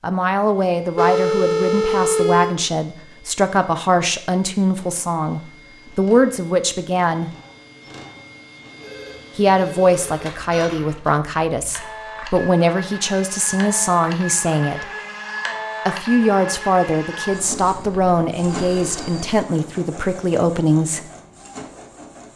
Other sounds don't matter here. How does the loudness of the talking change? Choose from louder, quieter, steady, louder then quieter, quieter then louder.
steady.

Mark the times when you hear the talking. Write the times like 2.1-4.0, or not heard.
0.0-7.3, 9.3-14.8, 15.8-21.1.